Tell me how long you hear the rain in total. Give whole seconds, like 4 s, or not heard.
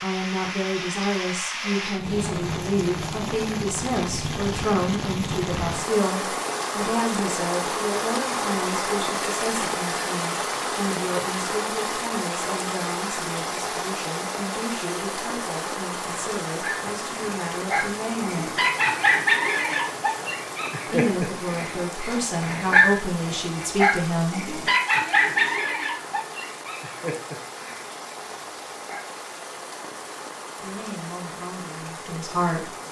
33 s.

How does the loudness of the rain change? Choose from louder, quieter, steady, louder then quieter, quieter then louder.
quieter.